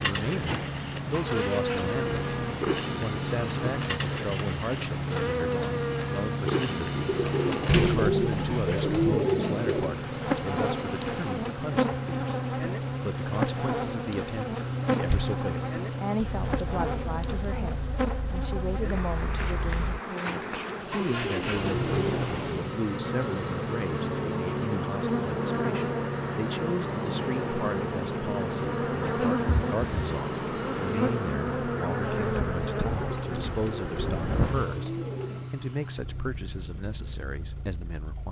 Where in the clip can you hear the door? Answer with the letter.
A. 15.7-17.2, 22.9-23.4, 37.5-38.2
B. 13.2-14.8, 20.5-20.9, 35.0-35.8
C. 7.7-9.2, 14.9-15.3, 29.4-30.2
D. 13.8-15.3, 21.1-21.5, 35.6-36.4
C.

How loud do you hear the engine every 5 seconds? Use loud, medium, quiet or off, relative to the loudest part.
loud, loud, loud, loud, loud, loud, loud, medium.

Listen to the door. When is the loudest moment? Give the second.
8 s.